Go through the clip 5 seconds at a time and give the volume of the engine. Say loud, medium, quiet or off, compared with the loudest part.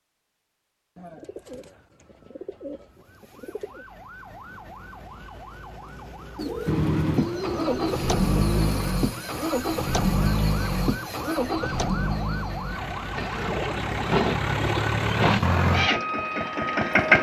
off, loud, medium, loud.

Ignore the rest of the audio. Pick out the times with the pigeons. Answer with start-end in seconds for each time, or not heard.
0.9-3.9, 6.3-8.9, 13.2-15.5.